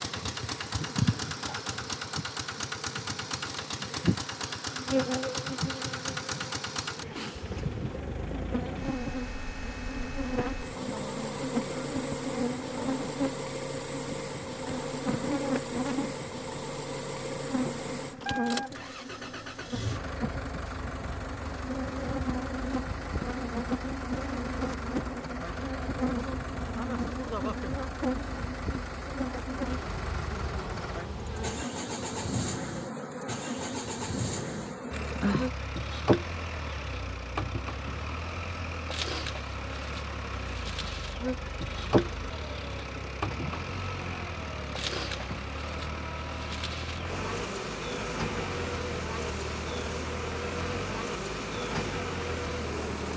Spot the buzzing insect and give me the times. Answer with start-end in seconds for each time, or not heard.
0.0-53.1.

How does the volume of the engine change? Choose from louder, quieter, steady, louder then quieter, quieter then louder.
steady.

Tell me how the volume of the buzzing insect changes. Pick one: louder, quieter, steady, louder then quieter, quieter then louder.
steady.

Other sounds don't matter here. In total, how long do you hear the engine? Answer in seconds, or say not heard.
53 s.